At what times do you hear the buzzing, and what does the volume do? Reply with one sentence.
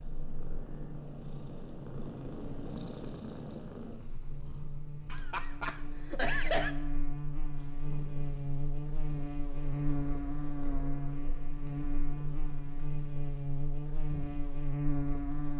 You can hear the buzzing from 0.0 to 15.5 s, getting louder.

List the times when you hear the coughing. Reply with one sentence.
You can hear the coughing from 5.1 to 6.8 s.